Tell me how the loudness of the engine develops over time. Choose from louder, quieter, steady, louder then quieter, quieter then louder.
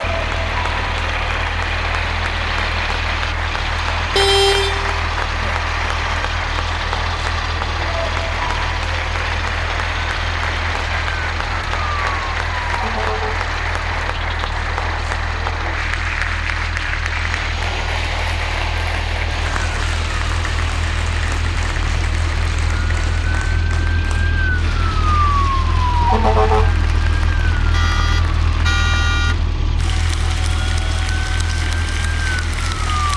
quieter.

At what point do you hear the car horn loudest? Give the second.
4 s.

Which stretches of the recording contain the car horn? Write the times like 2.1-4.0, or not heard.
4.0-5.5, 27.7-29.4.